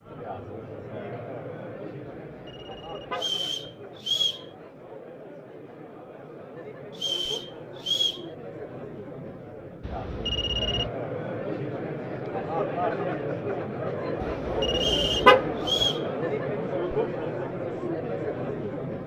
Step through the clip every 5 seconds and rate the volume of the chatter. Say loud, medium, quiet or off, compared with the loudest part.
medium, medium, loud, loud.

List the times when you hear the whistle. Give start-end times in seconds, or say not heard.
3.1-4.5, 7.0-8.2, 14.8-16.1.